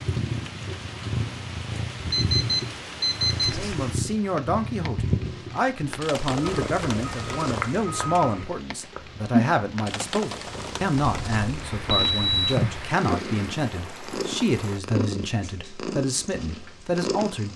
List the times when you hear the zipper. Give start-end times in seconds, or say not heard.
not heard.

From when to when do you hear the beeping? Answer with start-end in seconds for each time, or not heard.
2.1-3.6, 6.5-8.4, 11.9-12.6.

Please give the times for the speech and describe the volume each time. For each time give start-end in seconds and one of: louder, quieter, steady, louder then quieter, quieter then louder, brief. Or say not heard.
3.5-17.5 steady.